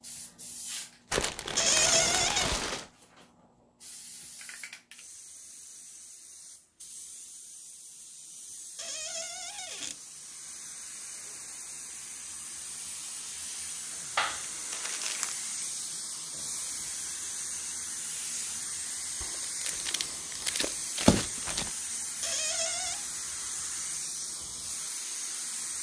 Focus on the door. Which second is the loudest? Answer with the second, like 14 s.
2 s.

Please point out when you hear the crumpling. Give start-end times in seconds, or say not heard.
1.1-2.9, 14.2-15.3, 19.2-21.7.